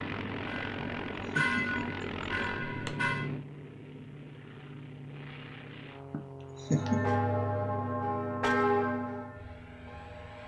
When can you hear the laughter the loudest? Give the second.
7 s.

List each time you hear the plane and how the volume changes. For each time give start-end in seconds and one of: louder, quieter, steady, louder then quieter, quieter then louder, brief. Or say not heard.
0.0-10.4 quieter.